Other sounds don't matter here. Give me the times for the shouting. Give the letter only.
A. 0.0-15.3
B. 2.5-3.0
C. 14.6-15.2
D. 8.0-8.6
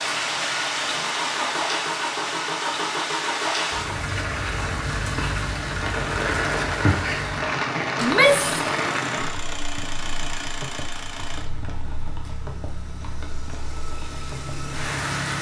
D.